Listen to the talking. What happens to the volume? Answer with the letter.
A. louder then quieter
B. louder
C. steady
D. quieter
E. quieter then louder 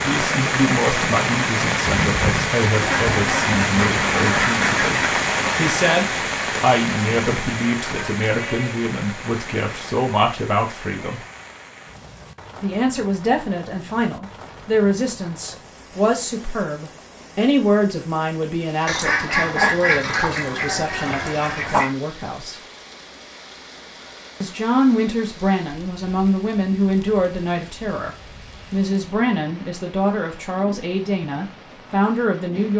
C.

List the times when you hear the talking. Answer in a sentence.
You can hear the talking from 0.0 to 11.2 s, from 12.6 to 22.6 s and from 24.4 to 32.7 s.